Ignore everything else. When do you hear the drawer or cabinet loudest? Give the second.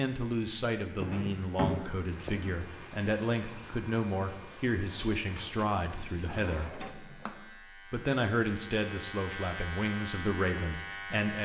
2 s.